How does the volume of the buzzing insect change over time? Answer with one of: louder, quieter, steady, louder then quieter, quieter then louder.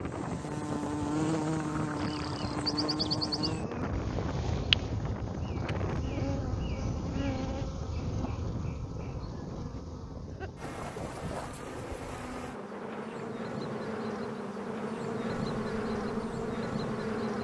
quieter then louder.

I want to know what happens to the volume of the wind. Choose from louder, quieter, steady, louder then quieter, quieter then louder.
quieter.